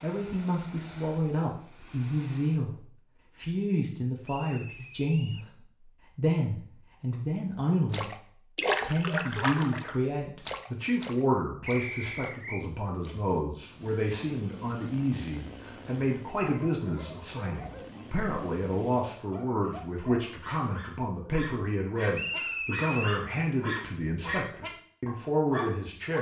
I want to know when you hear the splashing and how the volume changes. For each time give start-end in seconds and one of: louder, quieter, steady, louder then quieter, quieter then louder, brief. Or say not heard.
7.9-13.4 quieter.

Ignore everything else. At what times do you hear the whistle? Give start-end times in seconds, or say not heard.
4.2-5.5, 11.7-12.7, 22.1-23.2.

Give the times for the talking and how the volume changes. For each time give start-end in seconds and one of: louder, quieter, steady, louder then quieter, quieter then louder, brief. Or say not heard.
0.0-8.1 steady
8.8-26.1 steady.